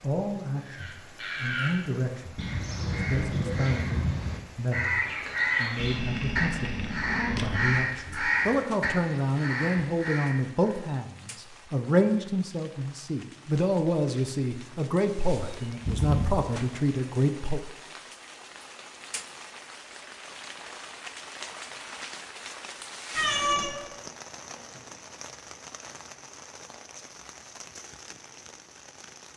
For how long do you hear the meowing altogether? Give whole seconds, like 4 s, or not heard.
4 s.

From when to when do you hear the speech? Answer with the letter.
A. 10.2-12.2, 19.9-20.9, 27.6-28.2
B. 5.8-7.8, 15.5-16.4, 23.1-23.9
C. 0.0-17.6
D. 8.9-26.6
C.